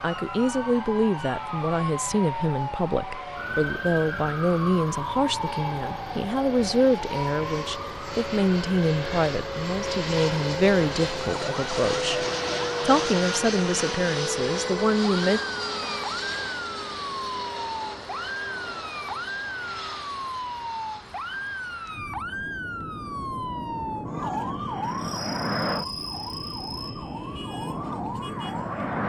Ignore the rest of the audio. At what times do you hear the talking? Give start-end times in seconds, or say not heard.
0.0-15.4.